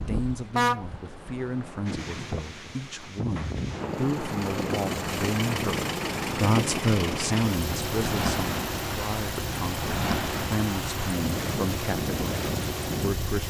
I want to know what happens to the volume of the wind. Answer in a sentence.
The loudness of the wind goes up.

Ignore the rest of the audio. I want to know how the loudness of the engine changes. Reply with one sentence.
The loudness of the engine stays about the same.